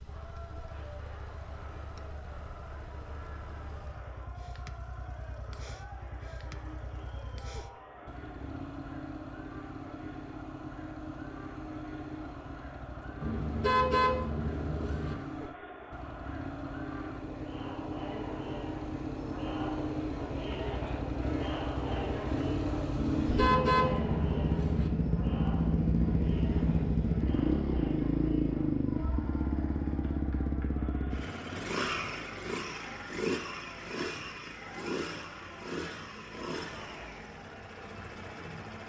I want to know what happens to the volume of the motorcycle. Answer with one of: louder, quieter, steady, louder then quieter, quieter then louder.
louder then quieter.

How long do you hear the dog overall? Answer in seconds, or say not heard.
not heard.